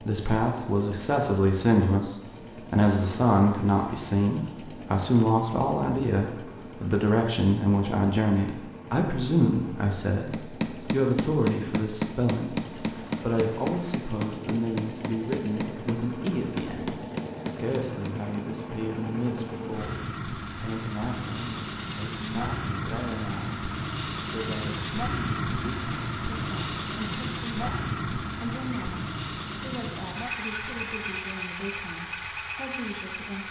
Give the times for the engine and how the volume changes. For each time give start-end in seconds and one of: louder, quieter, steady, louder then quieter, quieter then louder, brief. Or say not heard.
0.0-33.4 louder.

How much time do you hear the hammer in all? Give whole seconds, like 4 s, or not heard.
8 s.